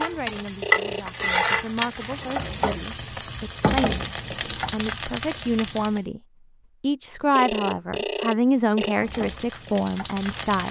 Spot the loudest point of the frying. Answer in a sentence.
The volume of the frying peaks at 1 second.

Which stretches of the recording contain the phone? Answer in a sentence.
You can hear the phone from 0.6 to 1.4 s and from 7.3 to 8.9 s.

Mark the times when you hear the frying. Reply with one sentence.
The frying can be heard from 0.0 to 6.0 s and from 9.0 to 10.6 s.